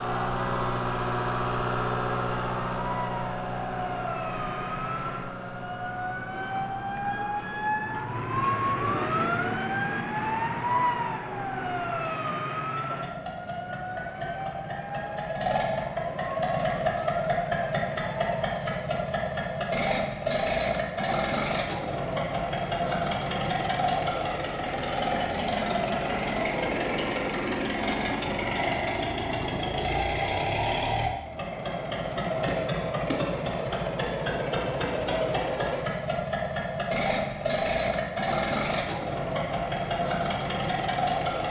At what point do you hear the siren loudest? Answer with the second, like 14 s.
9 s.